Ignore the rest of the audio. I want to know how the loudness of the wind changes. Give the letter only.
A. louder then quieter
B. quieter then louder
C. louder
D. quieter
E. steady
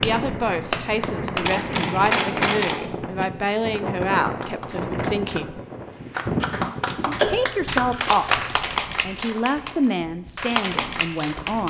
D.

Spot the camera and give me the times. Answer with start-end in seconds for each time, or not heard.
1.4-2.8, 6.4-8.4.